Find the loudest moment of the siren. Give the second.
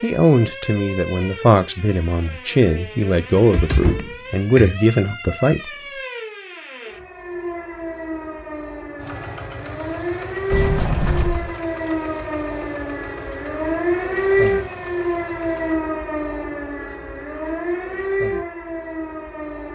14 s.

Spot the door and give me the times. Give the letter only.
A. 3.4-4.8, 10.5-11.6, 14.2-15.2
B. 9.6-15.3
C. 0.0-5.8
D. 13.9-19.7
A.